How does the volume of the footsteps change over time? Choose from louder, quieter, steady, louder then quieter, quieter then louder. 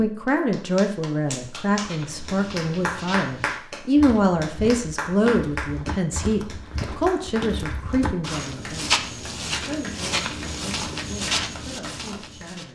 louder.